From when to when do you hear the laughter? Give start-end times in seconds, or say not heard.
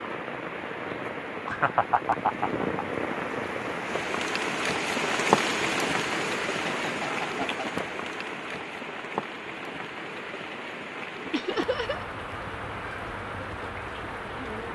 1.4-3.1, 6.5-7.7, 11.3-12.1.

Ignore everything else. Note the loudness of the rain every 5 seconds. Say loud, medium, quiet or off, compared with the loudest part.
loud, loud, medium.